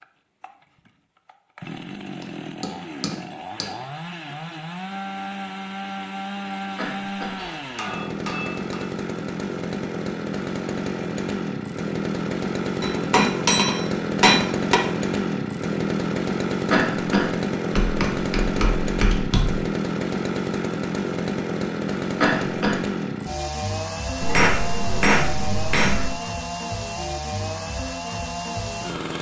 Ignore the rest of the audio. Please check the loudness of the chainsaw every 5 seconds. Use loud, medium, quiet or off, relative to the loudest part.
medium, medium, loud, loud, loud, medium.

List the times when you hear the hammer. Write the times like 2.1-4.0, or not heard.
2.2-3.8, 7.3-8.8, 12.8-14.8, 17.8-19.6, 24.2-26.1.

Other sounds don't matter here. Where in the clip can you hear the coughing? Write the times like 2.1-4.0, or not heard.
6.8-7.4, 16.7-17.3, 22.2-22.8.